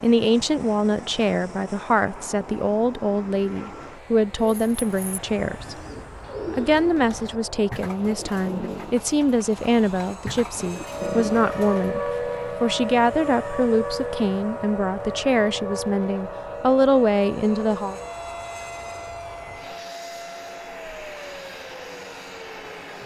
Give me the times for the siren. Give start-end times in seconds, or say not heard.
10.8-23.0.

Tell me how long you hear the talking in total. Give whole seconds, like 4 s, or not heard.
17 s.